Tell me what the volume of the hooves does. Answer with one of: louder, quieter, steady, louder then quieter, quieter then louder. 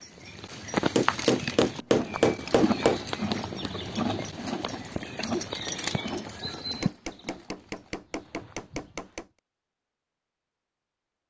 quieter.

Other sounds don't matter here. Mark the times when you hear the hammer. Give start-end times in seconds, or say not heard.
0.9-3.0, 6.8-9.2.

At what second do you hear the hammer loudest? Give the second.
2 s.